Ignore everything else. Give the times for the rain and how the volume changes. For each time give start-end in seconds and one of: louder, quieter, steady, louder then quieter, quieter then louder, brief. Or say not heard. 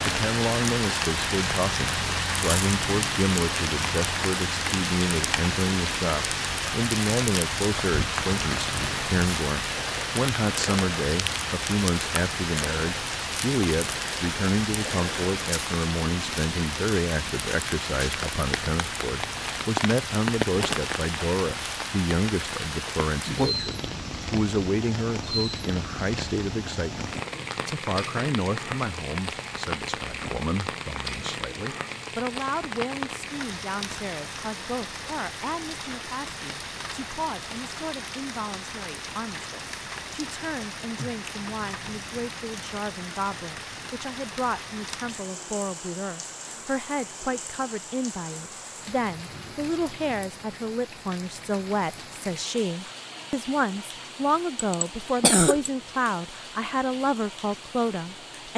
0.0-58.5 quieter.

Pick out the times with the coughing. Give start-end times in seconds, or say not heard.
54.5-55.7.